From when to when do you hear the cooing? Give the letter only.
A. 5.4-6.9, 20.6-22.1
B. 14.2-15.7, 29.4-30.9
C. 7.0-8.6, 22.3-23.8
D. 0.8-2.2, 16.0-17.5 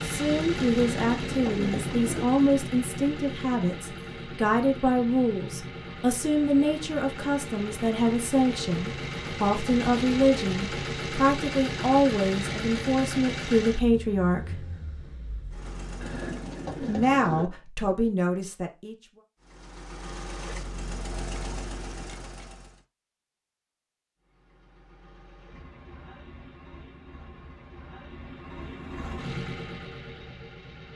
D.